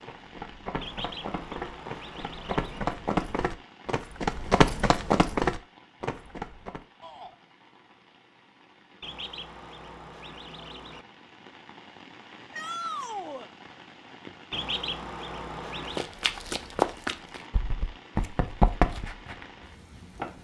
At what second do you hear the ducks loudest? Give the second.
15 s.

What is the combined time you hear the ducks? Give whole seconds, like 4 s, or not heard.
6 s.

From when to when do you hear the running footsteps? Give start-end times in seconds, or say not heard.
0.0-6.8, 15.9-20.3.